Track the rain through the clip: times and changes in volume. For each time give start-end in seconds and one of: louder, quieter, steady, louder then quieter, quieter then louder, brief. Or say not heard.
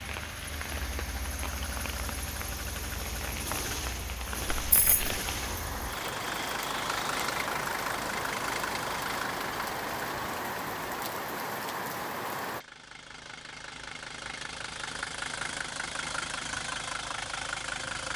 0.0-12.7 louder.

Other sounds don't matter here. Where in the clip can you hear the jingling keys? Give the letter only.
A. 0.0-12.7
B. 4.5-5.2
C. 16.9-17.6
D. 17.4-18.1
B.